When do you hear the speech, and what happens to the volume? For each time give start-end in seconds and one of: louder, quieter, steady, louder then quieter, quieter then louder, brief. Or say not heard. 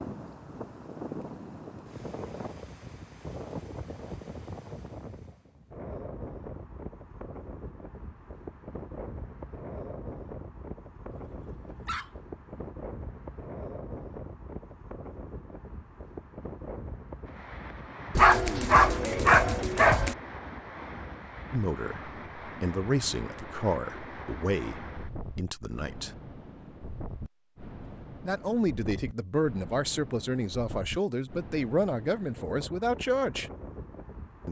21.5-26.1 louder then quieter
28.2-33.5 steady.